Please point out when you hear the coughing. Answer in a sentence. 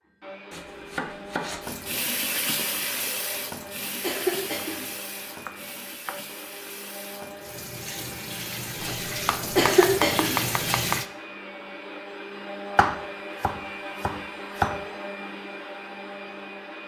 You can hear the coughing from 4.0 to 4.8 s and from 9.6 to 10.4 s.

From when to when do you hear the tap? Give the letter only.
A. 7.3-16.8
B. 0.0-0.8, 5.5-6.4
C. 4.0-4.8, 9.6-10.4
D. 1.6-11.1
D.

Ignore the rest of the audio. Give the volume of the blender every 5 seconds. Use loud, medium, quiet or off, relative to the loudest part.
medium, medium, loud, loud.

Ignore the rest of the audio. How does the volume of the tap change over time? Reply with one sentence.
The loudness of the tap goes down, then up.